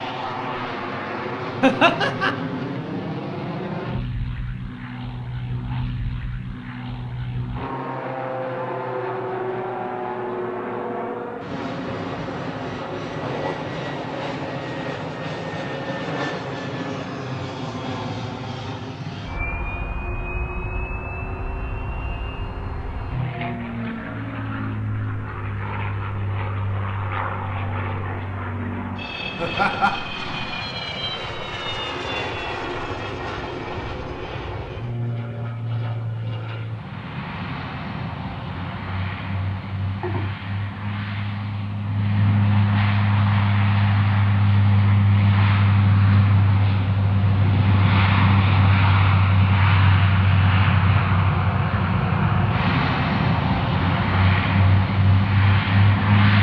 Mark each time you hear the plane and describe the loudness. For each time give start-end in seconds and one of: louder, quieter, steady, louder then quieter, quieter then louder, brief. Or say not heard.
0.0-56.3 louder.